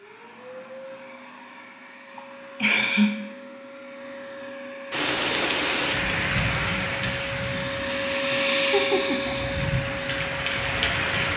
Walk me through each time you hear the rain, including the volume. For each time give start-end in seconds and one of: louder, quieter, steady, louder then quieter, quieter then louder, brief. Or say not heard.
4.9-11.3 quieter then louder.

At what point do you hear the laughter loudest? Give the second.
3 s.